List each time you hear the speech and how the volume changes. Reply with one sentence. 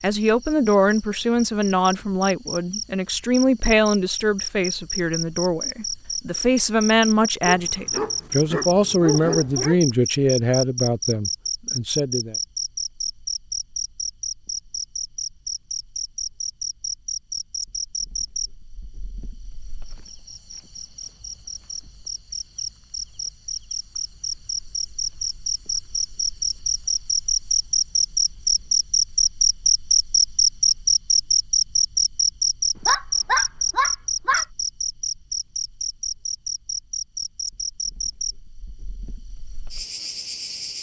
You can hear the speech from 0.0 to 12.3 s, at a steady volume.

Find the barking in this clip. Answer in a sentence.
You can hear the barking from 7.5 to 9.8 s and from 32.9 to 34.5 s.